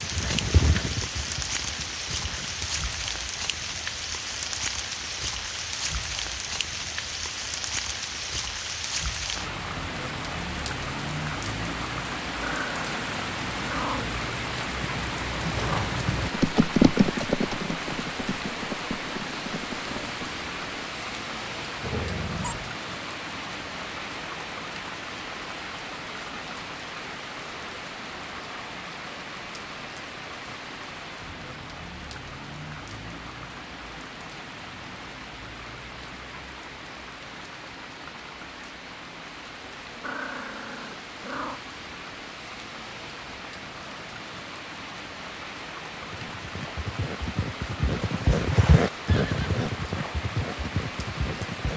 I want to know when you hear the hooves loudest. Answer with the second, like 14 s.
17 s.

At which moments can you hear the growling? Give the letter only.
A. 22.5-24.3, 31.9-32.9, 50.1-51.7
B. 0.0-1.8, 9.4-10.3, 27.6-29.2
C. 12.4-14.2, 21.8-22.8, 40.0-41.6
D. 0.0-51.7
C.